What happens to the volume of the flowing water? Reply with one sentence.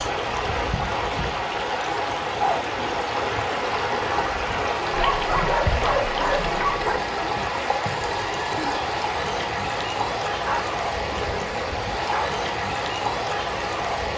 The loudness of the flowing water stays about the same.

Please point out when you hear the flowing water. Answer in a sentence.
The flowing water can be heard from 0.0 to 14.1 s.